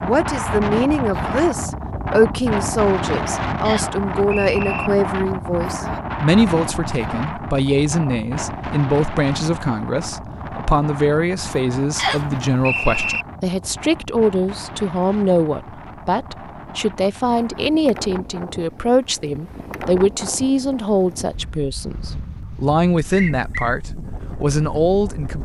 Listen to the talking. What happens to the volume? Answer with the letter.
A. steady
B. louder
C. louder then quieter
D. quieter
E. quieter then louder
A.